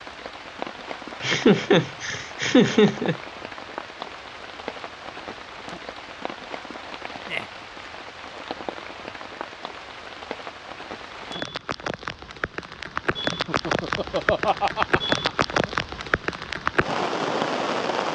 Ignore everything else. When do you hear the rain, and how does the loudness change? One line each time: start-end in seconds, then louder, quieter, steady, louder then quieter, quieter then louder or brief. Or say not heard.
0.0-18.0 louder.